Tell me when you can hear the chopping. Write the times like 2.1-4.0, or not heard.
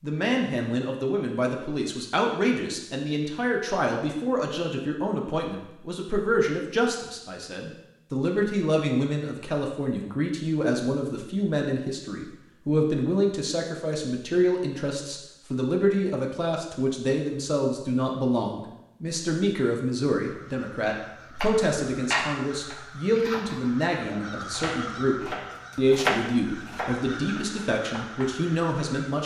20.9-28.3.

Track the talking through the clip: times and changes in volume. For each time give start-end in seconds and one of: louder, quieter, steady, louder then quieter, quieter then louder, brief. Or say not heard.
0.0-29.2 steady.